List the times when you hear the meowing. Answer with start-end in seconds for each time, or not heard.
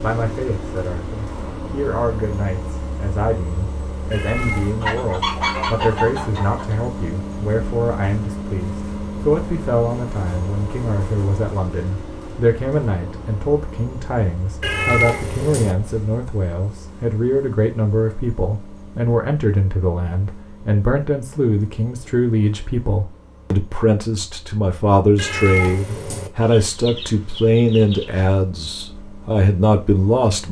4.1-4.8, 14.6-15.8, 25.1-26.3.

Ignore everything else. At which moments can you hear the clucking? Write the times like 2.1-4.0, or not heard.
4.6-6.8, 26.4-28.4.